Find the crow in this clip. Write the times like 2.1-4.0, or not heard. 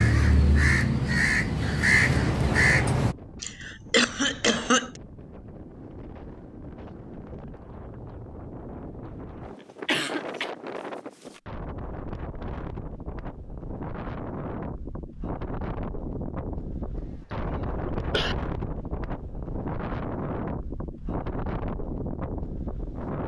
0.0-3.1.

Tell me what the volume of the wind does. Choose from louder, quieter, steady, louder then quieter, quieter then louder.
louder.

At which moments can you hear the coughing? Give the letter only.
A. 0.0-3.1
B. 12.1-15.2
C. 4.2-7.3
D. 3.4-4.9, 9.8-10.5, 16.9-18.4
D.